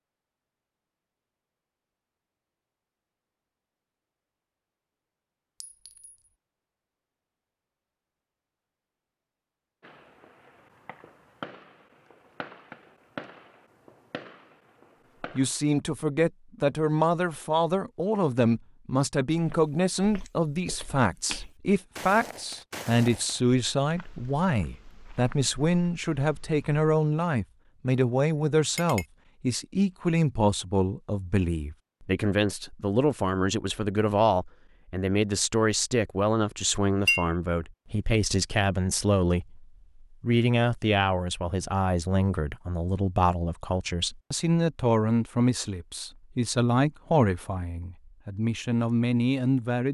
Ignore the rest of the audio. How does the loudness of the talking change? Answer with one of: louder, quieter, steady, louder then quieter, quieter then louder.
steady.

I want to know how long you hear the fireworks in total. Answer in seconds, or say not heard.
6 s.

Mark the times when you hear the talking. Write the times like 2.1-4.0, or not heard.
15.3-49.8.